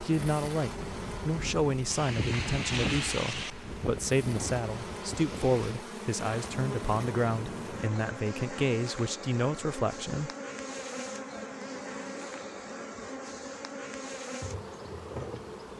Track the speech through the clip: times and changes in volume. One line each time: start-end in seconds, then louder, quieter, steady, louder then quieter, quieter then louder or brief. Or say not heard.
0.0-10.3 steady.